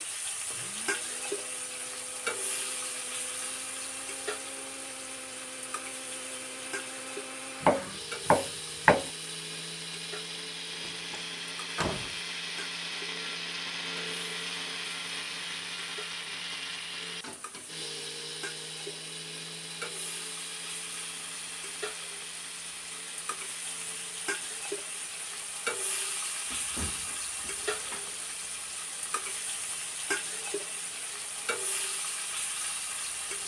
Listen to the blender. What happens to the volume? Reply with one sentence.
The loudness of the blender goes up, then down.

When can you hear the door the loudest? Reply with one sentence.
The loudest moment of the door is at 12 seconds.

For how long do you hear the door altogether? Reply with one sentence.
You can hear the door for 3 seconds altogether.